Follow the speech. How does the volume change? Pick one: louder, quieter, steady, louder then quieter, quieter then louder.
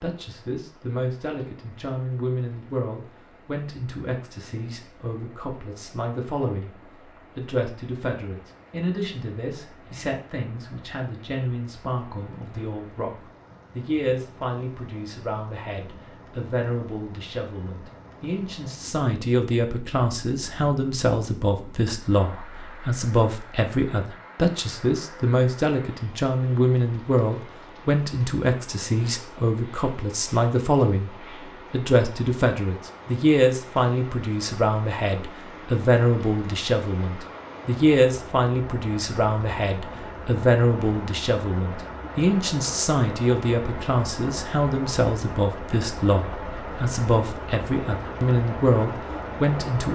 louder.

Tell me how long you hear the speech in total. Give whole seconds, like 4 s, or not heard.
48 s.